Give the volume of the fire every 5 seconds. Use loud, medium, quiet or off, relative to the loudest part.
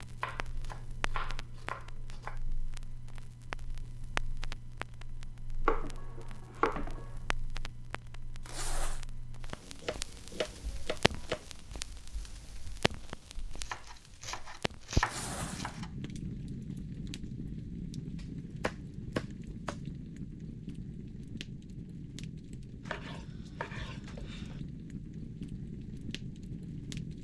loud, medium, loud, loud, loud, loud.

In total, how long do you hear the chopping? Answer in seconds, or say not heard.
11 s.